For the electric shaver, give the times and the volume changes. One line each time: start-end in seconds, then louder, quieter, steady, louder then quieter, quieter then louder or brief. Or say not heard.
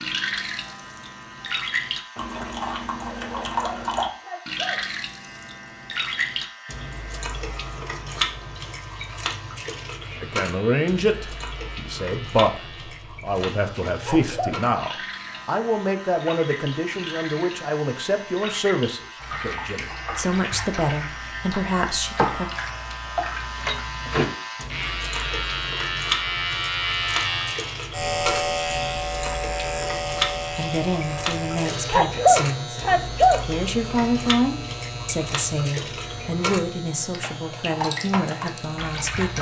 0.0-39.3 louder then quieter.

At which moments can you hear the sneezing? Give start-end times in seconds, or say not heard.
3.2-4.8, 14.0-14.6, 31.9-33.4.